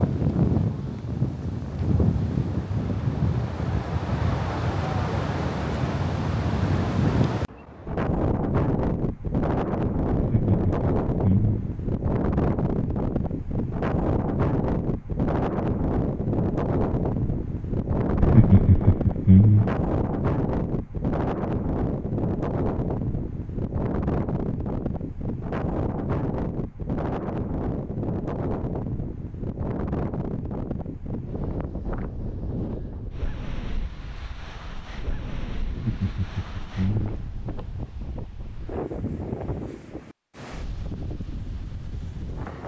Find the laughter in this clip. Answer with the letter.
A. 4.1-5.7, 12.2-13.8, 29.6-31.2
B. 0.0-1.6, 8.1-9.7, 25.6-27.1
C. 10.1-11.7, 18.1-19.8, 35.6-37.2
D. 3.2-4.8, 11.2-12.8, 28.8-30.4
C.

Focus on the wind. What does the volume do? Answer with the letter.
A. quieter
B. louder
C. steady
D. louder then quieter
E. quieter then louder
A.